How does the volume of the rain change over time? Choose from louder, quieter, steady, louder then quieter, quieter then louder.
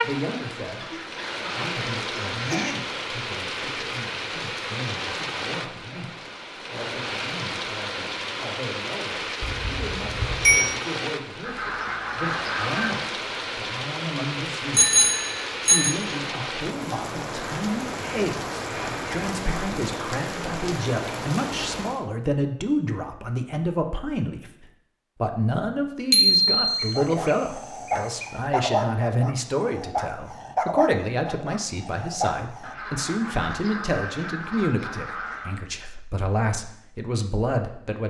steady.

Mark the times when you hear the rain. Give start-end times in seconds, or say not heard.
0.0-22.1.